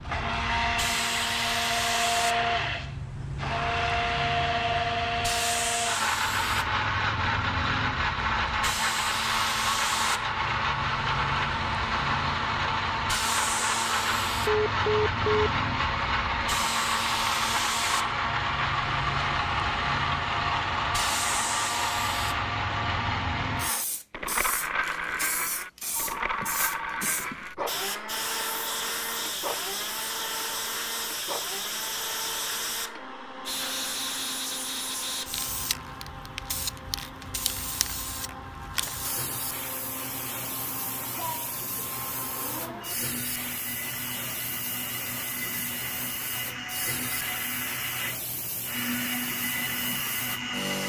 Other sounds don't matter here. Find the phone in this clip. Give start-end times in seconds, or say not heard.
14.4-15.3, 25.9-27.4.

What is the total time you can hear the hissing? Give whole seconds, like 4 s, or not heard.
51 s.